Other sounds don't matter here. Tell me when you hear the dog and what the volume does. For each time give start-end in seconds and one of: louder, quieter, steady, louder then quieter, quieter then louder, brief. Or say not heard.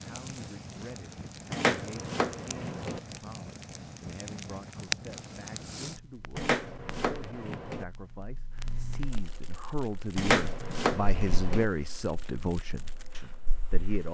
not heard.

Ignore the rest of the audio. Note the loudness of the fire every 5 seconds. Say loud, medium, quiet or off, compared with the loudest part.
loud, medium, quiet.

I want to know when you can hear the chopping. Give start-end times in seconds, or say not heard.
1.5-3.0, 6.3-7.8, 10.2-11.7.